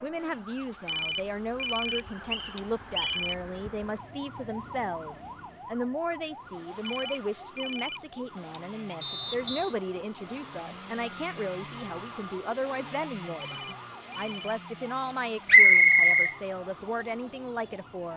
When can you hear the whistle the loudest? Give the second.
16 s.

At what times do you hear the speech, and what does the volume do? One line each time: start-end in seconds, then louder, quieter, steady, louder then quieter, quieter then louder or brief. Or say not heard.
0.0-18.1 steady.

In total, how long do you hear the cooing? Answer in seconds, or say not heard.
not heard.